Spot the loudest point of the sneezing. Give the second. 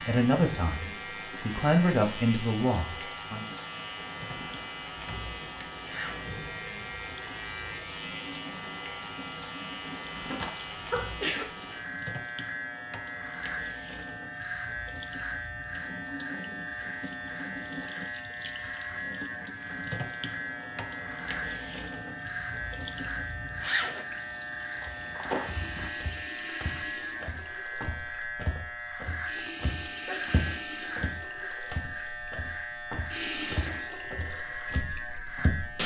11 s.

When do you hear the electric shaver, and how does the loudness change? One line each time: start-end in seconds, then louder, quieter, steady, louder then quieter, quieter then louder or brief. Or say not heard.
0.0-35.8 steady.